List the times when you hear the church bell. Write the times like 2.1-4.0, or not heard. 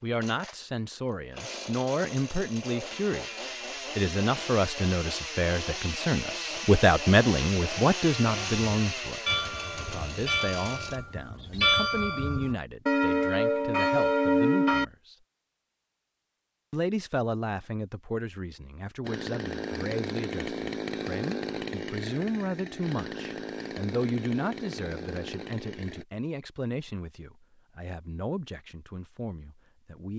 8.2-14.8.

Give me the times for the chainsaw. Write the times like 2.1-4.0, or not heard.
0.0-11.0, 19.0-26.1.